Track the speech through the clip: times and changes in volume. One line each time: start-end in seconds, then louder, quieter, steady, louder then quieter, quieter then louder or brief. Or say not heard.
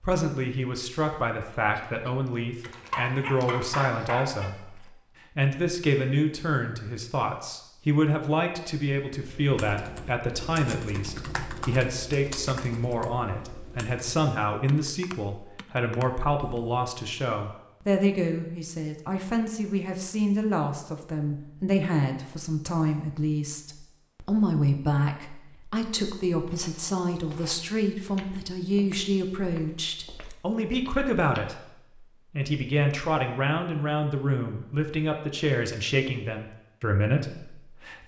0.0-38.0 steady.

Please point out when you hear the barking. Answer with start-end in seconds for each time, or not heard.
2.6-4.5.